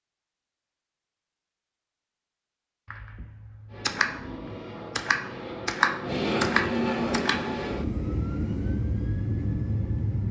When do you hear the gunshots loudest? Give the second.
6 s.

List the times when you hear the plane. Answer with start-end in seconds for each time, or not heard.
3.7-10.2.